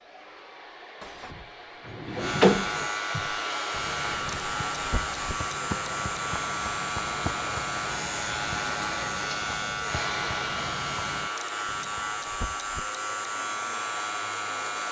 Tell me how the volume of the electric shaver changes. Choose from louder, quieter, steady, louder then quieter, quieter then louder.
steady.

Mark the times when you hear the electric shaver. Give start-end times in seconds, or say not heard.
2.1-14.8.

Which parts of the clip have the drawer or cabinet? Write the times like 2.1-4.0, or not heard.
1.0-2.9.